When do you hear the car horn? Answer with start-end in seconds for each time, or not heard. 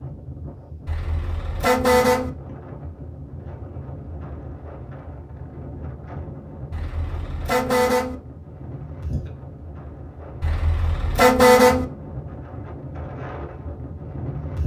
0.8-2.3, 6.7-8.2, 10.4-11.8.